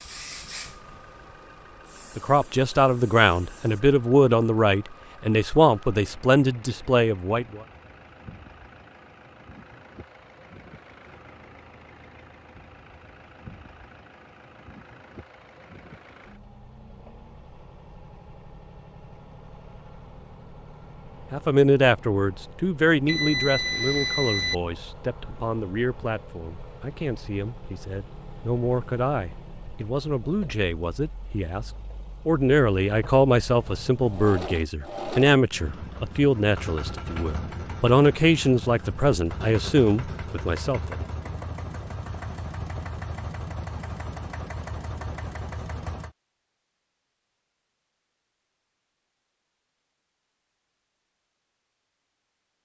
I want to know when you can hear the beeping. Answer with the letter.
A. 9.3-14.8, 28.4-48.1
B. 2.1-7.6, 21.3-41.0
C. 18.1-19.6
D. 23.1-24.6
D.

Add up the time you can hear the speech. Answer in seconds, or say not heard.
25 s.